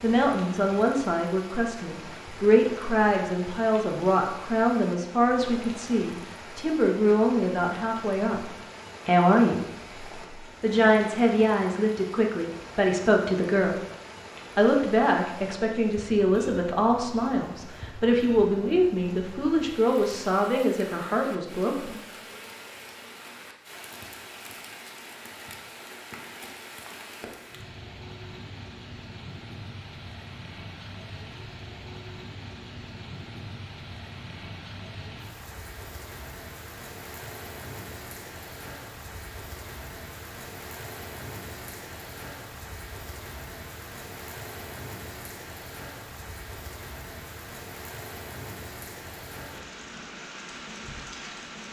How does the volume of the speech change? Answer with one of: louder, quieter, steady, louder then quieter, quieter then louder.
steady.